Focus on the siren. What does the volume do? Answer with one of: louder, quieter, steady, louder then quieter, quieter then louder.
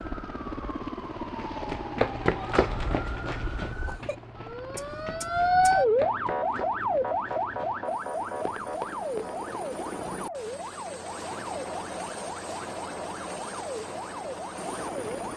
louder then quieter.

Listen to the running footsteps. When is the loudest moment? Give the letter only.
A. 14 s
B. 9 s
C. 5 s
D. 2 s
D.